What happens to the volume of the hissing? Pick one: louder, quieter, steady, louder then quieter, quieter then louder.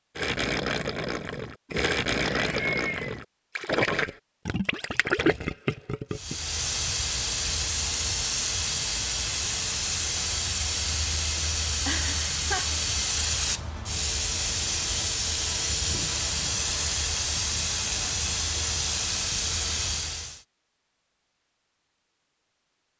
steady.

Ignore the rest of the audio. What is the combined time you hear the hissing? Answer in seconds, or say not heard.
14 s.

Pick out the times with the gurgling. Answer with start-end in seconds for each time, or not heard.
0.1-6.3.